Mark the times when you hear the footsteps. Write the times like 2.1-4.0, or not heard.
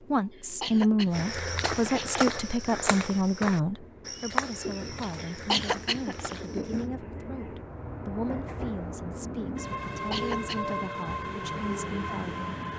1.1-6.9.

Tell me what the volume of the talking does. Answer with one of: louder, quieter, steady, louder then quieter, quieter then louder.
quieter.